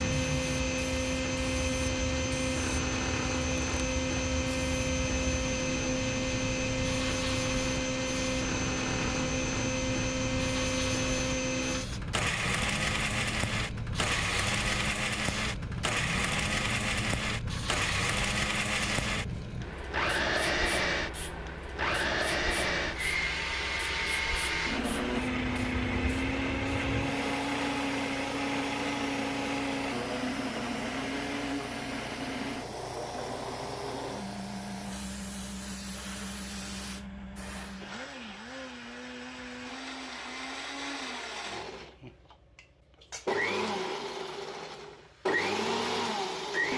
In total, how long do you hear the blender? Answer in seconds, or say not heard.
47 s.